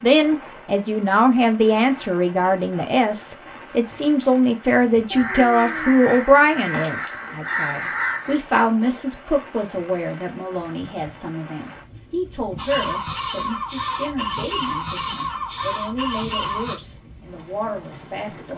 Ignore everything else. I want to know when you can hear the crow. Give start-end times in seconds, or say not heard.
5.2-8.3, 12.6-16.8.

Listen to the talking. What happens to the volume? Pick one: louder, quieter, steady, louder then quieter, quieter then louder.
quieter.